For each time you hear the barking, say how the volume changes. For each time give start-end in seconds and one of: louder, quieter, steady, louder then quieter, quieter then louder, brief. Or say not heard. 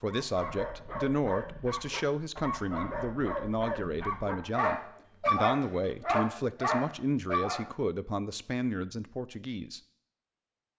0.1-7.7 louder.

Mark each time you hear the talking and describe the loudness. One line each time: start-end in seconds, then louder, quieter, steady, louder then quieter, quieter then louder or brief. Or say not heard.
0.0-9.8 steady.